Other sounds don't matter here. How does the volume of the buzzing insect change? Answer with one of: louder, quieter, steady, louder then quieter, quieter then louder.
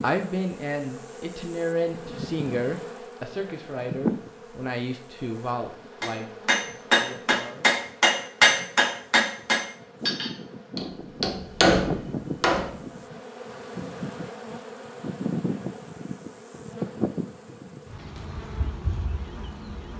quieter then louder.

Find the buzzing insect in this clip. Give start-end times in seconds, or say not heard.
0.0-19.9.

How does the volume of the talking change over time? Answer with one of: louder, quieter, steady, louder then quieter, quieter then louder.
quieter.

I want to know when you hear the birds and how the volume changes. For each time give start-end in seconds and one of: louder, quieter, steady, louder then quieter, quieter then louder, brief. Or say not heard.
not heard.